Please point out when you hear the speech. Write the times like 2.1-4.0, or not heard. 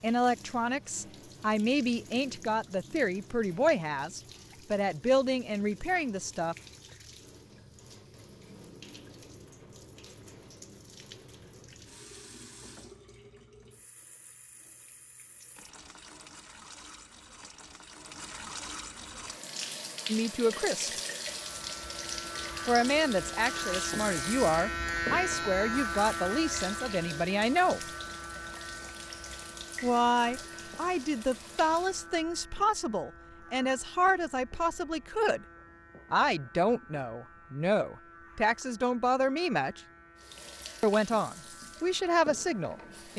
0.0-6.5, 20.1-20.9, 22.6-27.9, 29.8-35.5, 36.1-39.8, 40.8-43.1.